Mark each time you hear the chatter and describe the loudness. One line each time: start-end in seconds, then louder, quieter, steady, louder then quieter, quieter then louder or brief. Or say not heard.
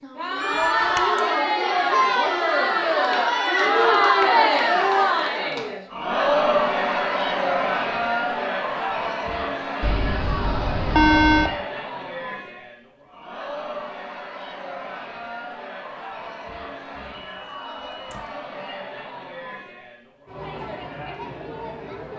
0.0-22.1 quieter.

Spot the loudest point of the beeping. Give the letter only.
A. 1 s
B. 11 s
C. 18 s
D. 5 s
B.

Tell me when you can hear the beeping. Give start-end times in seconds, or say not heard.
0.4-1.2, 9.8-11.6, 16.9-18.3.